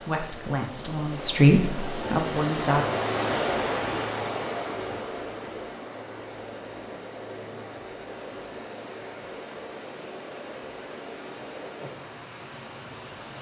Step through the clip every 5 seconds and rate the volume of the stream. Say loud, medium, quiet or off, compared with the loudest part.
loud, medium, medium.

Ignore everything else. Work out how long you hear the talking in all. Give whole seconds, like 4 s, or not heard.
3 s.